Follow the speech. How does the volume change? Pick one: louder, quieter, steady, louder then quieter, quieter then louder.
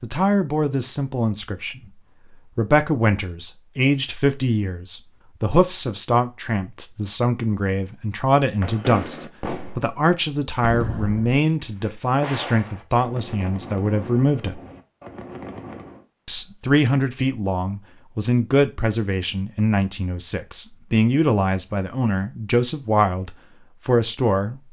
steady.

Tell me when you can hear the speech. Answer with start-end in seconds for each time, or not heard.
0.0-14.6, 16.2-24.6.